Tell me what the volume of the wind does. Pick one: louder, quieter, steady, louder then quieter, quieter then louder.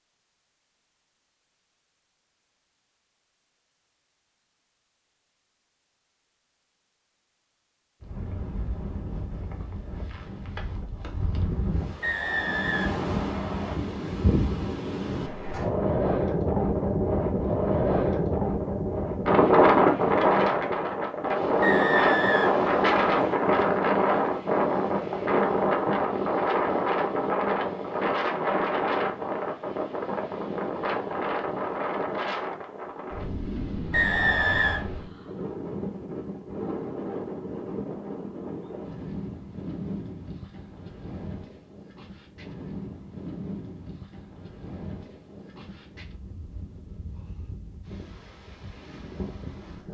louder then quieter.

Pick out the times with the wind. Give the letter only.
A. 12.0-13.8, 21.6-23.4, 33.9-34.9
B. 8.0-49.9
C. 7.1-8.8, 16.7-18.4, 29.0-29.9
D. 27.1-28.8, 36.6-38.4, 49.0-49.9
B.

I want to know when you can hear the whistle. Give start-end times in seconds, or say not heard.
12.0-13.8, 21.6-23.4, 33.9-34.9.